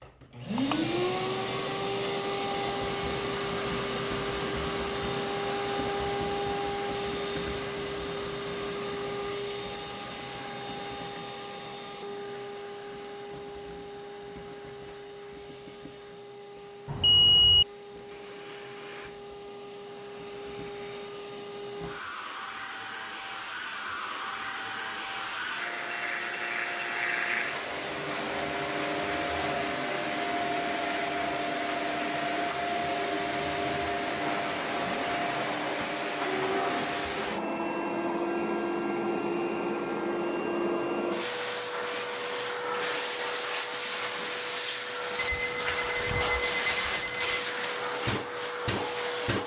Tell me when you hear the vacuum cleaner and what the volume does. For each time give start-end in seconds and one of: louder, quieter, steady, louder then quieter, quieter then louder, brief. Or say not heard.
0.0-49.4 quieter then louder.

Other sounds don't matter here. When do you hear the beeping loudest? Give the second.
17 s.